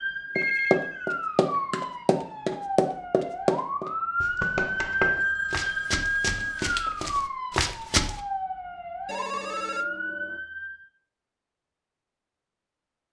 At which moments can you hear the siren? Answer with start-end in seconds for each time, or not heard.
0.0-10.8.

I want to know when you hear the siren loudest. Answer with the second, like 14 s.
5 s.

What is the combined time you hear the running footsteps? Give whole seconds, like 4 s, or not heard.
8 s.